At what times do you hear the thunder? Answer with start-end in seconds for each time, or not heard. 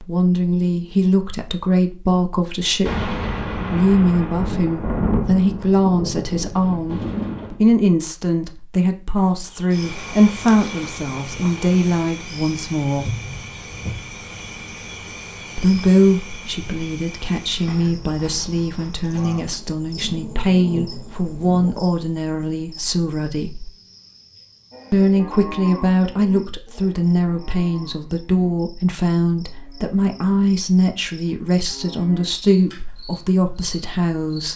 2.9-7.6, 19.1-21.9.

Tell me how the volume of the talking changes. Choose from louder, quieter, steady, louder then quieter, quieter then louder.
steady.